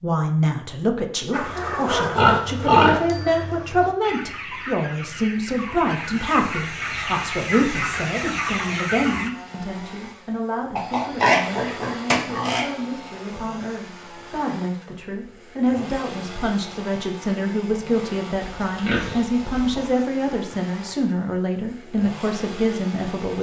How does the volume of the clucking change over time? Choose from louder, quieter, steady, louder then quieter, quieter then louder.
quieter then louder.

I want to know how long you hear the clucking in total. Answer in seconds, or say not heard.
8 s.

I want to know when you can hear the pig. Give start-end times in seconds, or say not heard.
2.1-3.4, 10.8-12.7, 18.4-19.9.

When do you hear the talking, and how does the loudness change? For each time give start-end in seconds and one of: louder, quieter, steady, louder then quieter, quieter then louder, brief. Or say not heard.
0.0-23.3 quieter then louder.